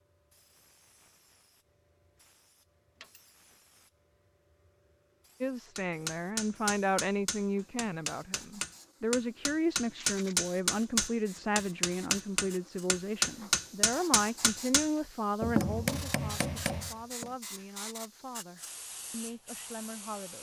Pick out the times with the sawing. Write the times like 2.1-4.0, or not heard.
not heard.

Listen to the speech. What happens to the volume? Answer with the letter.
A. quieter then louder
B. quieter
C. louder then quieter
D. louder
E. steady
B.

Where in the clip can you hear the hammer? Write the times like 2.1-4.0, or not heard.
5.8-17.3.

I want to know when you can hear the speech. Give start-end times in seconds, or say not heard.
5.4-20.3.